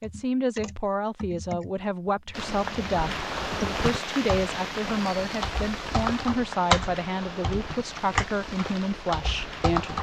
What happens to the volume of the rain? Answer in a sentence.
The loudness of the rain goes down.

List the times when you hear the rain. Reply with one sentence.
The rain can be heard from 2.3 to 9.9 s.